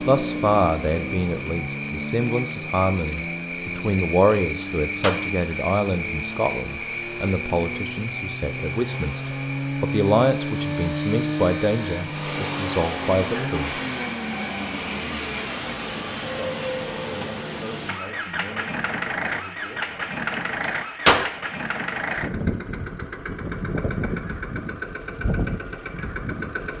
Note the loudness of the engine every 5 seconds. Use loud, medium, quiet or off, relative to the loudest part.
medium, medium, loud, loud, loud, loud.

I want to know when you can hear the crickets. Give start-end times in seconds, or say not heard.
0.0-15.4.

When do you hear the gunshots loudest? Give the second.
21 s.